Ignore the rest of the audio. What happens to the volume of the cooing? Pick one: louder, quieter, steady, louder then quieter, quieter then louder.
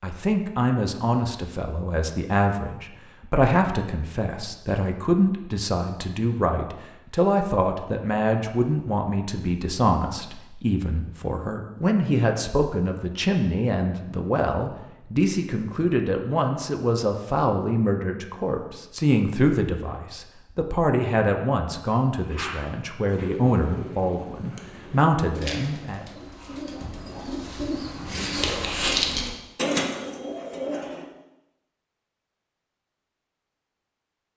louder.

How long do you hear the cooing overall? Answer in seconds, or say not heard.
9 s.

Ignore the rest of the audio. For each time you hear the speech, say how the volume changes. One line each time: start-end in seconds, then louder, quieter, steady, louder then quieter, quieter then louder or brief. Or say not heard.
0.0-26.1 steady.